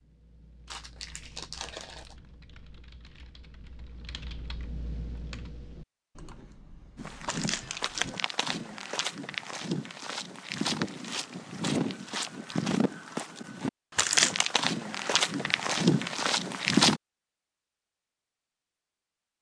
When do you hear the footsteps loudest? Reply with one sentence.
The loudest moment of the footsteps is at 17 seconds.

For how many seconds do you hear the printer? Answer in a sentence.
You can't hear the printer here.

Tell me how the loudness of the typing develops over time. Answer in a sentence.
The volume of the typing goes up, then down.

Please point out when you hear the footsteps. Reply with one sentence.
The footsteps can be heard from 7.0 to 17.0 s.